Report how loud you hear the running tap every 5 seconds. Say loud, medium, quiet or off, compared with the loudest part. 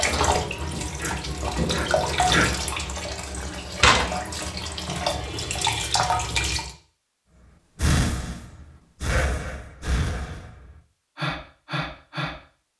loud, loud, off.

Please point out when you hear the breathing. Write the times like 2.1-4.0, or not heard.
0.0-2.5, 7.8-12.7.